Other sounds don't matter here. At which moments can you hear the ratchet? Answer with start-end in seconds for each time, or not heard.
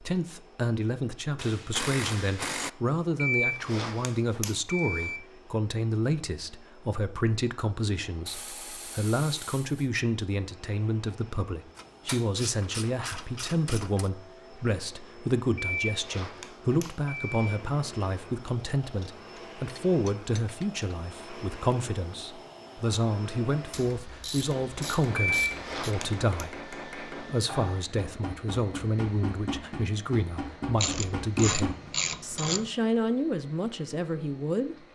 1.4-2.7, 8.2-9.9, 11.8-14.1, 18.8-20.9, 23.7-25.9, 30.8-32.7.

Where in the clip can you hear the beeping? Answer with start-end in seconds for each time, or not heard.
3.1-5.2, 15.6-17.4, 25.2-26.2.